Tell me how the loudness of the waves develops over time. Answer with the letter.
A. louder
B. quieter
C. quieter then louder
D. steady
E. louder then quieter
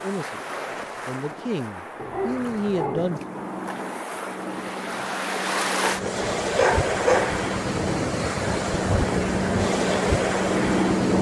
A.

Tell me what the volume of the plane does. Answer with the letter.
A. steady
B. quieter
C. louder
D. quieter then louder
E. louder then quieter
C.